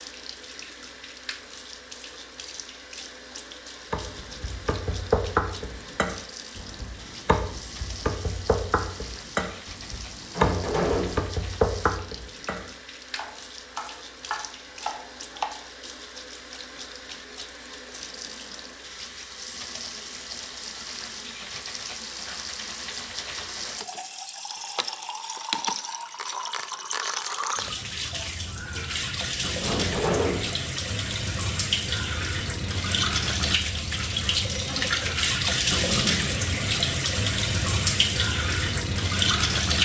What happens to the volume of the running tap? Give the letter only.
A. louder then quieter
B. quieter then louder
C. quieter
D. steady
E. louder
E.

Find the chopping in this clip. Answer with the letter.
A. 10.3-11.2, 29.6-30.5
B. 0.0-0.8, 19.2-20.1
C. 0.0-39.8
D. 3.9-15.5
D.